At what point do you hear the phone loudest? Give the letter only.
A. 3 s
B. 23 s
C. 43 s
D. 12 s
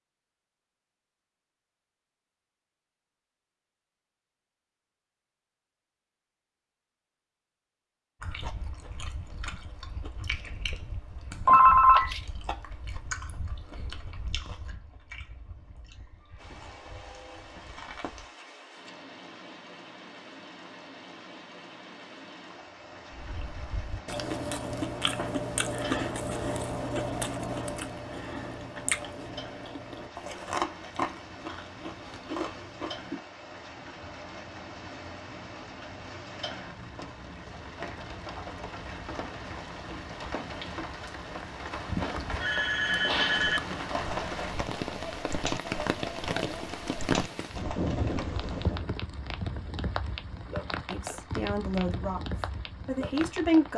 D.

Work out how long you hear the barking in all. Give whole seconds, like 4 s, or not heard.
not heard.